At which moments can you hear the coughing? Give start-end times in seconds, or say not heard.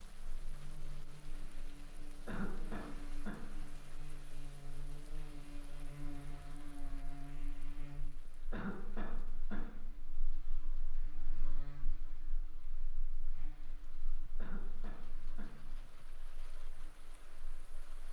2.2-3.4, 8.5-9.7, 14.3-15.6.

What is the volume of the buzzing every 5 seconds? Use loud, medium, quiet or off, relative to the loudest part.
loud, loud, medium, quiet.